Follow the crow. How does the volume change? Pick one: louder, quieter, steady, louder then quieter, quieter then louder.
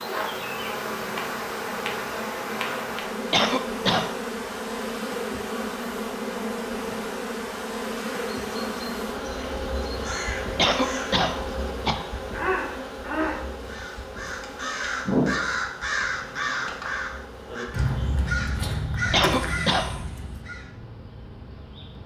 louder.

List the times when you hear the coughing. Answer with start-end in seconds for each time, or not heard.
3.3-4.1, 10.6-12.1, 19.1-20.0.